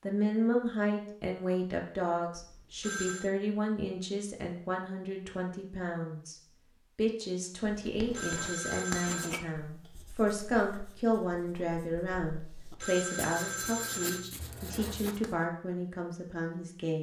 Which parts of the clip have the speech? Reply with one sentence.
You can hear the speech from 0.0 to 16.9 s.